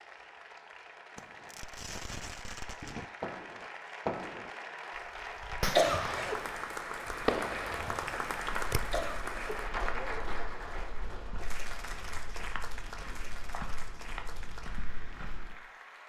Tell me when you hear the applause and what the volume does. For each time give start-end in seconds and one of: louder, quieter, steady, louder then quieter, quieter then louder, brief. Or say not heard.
0.0-16.0 louder then quieter.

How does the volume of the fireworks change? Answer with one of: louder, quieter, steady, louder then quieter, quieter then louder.
louder.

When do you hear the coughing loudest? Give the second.
6 s.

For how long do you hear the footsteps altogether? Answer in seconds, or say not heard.
7 s.